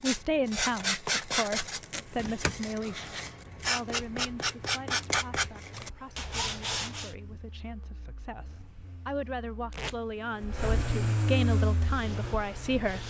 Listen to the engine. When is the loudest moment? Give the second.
11 s.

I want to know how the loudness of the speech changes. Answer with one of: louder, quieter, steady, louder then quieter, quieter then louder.
quieter then louder.